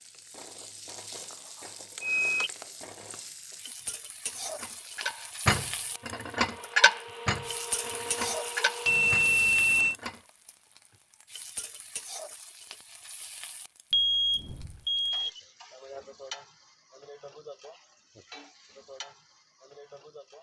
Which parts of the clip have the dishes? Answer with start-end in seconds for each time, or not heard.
4.2-10.2.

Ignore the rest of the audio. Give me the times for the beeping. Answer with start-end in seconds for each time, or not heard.
2.0-2.5, 8.8-9.9, 13.9-15.4.